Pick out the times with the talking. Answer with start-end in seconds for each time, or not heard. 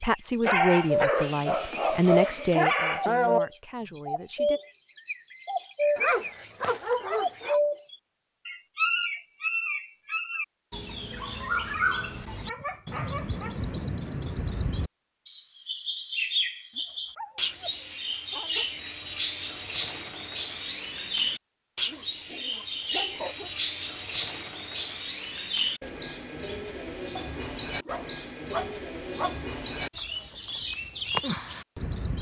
0.0-4.6.